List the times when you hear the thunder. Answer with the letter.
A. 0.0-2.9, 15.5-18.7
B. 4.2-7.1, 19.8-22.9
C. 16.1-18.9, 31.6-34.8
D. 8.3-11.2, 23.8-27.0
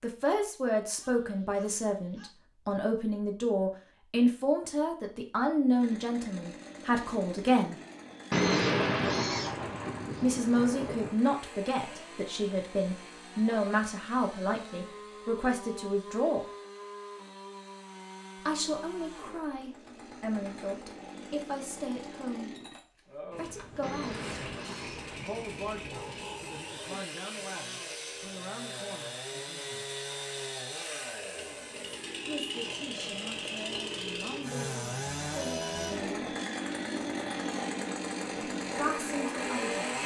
D.